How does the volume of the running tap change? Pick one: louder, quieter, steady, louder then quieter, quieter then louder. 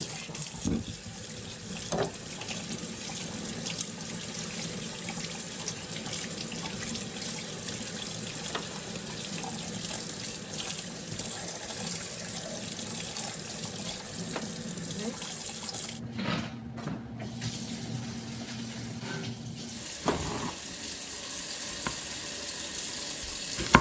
steady.